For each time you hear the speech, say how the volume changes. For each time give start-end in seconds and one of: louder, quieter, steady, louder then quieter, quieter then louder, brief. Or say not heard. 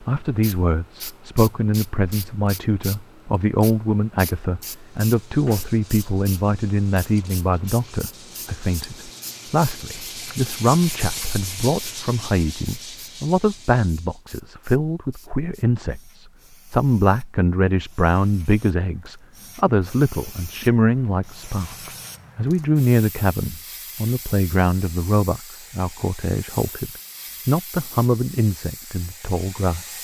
0.0-29.9 steady.